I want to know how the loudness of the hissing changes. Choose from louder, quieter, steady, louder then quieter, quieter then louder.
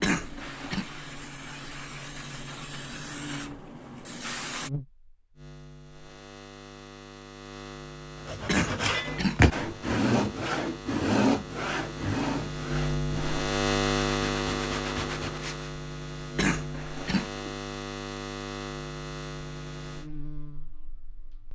steady.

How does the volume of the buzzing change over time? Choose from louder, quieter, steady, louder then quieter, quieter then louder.
louder then quieter.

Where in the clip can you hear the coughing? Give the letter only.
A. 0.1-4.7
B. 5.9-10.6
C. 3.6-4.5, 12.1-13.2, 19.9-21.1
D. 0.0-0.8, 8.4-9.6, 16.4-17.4
D.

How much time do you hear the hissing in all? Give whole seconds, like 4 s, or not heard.
5 s.